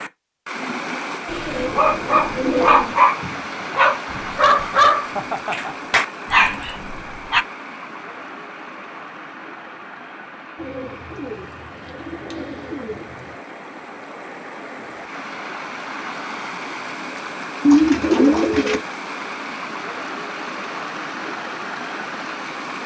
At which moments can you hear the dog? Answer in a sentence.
You can hear the dog from 1.7 to 7.5 s.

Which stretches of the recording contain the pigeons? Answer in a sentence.
You can hear the pigeons from 1.2 to 3.0 s, from 10.6 to 13.3 s and from 17.6 to 18.8 s.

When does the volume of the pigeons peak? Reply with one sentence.
The volume of the pigeons peaks at 18 seconds.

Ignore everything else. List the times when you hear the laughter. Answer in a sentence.
The laughter can be heard from 5.1 to 5.8 s.